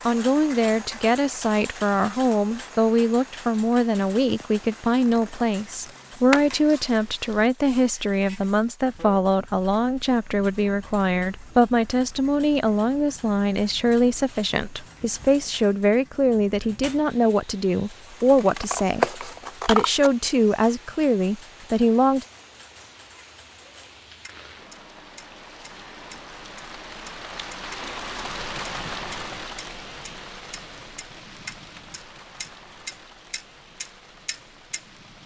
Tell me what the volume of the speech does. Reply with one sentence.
The volume of the speech stays about the same.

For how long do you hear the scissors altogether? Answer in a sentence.
The scissors can be heard for 4 seconds in total.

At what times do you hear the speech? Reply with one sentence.
The speech can be heard from 0.1 to 22.2 s.